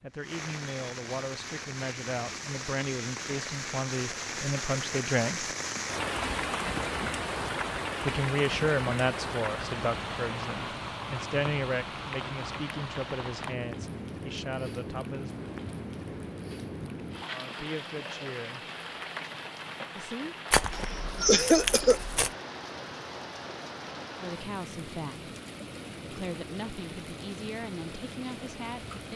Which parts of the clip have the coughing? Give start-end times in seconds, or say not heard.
20.7-22.0.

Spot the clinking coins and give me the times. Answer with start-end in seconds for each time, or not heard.
not heard.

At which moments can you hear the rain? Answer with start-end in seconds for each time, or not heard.
0.1-29.1.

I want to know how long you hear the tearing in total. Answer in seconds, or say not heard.
2 s.